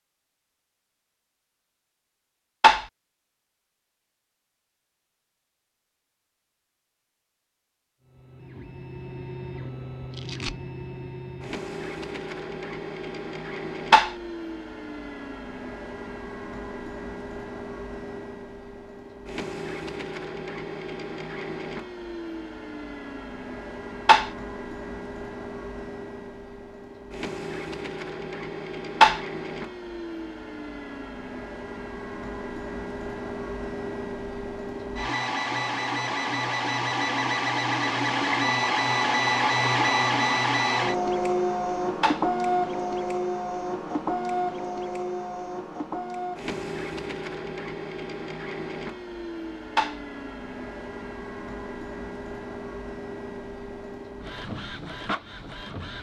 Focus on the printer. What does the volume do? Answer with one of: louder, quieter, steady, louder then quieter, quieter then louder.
louder then quieter.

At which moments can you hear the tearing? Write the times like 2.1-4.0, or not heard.
10.1-10.6.